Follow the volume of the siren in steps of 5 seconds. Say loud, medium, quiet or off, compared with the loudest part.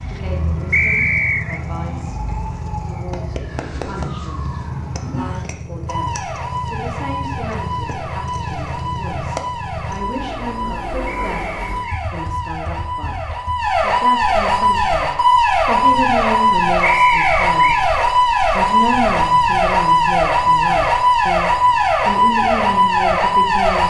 quiet, quiet, medium, loud, loud.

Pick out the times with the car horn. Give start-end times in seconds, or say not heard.
not heard.